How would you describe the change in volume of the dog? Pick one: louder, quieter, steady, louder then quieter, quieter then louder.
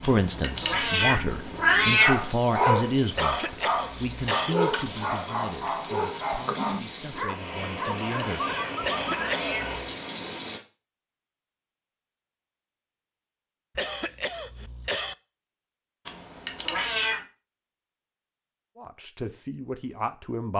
quieter.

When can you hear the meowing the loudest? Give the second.
2 s.